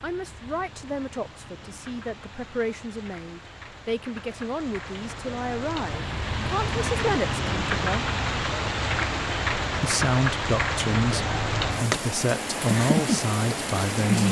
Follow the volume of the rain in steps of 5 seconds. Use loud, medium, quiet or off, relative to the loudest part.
quiet, loud, loud.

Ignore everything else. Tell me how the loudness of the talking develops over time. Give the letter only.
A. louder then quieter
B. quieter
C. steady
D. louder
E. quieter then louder
D.